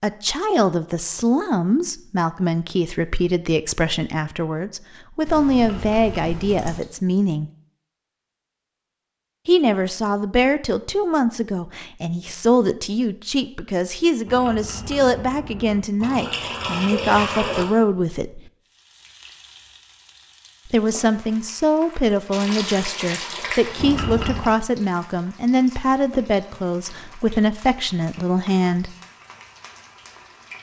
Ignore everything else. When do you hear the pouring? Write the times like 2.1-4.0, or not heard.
5.2-6.8, 16.0-17.6, 22.3-23.9.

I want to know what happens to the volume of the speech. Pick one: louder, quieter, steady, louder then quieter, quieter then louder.
steady.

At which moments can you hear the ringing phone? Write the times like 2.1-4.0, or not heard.
not heard.